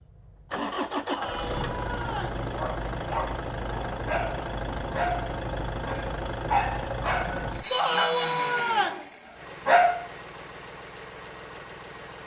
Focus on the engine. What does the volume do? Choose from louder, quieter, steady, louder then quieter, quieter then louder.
quieter.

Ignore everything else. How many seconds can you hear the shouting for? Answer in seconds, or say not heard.
3 s.